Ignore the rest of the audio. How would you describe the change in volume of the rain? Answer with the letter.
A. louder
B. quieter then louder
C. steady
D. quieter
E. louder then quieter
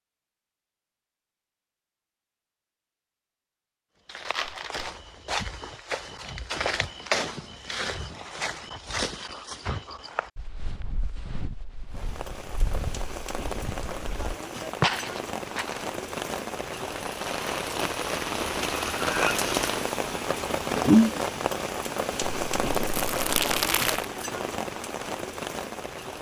E.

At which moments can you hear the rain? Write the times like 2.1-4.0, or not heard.
11.9-26.1.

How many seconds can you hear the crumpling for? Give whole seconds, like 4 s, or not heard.
2 s.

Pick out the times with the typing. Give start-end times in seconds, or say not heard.
not heard.